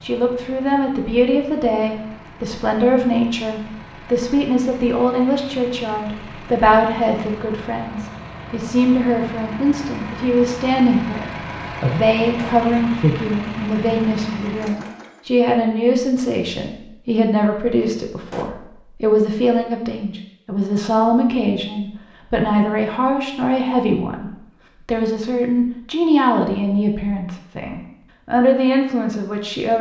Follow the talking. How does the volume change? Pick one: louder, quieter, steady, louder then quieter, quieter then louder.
steady.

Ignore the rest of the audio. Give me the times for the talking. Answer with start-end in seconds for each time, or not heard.
0.0-29.7.